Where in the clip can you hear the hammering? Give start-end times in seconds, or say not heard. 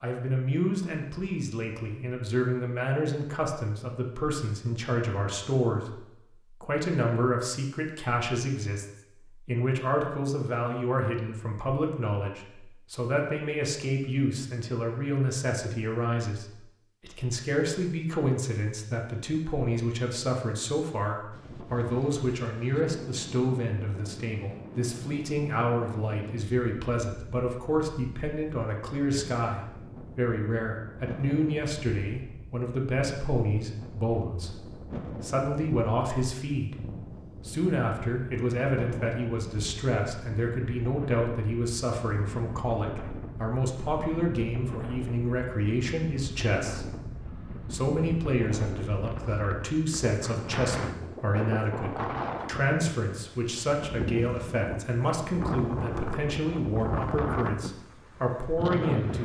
not heard.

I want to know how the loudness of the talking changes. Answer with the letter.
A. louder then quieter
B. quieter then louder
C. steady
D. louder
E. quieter
C.